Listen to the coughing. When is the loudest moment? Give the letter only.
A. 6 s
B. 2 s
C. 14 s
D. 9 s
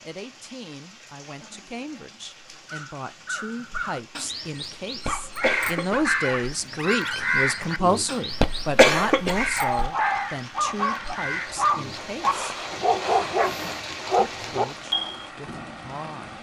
D.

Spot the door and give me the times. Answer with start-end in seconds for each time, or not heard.
not heard.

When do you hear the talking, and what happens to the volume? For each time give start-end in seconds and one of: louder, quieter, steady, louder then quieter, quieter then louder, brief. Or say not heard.
0.0-12.4 louder then quieter
14.3-16.3 brief.